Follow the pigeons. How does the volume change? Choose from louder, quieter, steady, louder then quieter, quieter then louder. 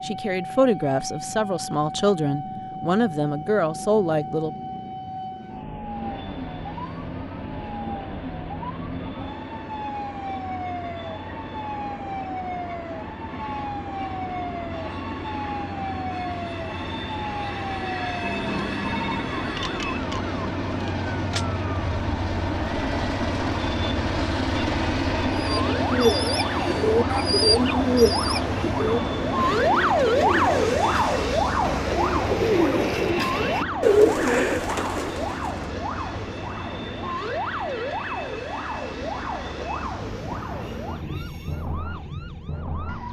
quieter then louder.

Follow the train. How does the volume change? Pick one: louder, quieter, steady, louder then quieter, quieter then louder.
louder then quieter.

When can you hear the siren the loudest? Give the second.
30 s.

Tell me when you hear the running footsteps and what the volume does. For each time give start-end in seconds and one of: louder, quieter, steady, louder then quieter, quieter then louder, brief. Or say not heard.
not heard.